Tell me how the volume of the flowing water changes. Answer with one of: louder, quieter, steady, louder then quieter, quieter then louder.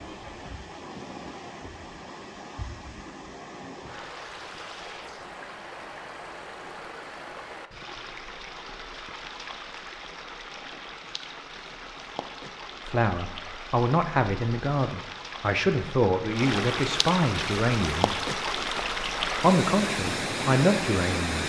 louder.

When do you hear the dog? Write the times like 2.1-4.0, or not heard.
not heard.